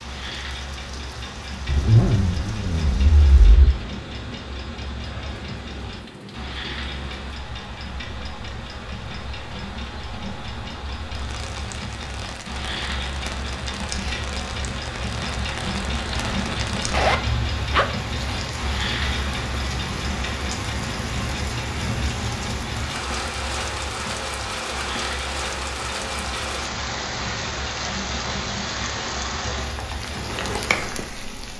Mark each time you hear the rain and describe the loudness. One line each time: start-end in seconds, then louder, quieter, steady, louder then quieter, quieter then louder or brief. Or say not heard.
0.0-31.5 louder.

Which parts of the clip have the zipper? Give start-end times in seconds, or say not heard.
1.6-3.7, 16.1-17.9.